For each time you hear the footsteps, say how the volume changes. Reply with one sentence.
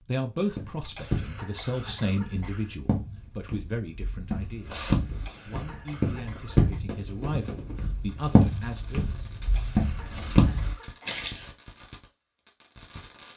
The footsteps can be heard from 0.5 to 11.5 s, getting louder.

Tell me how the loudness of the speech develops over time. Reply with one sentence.
The loudness of the speech goes down, then up.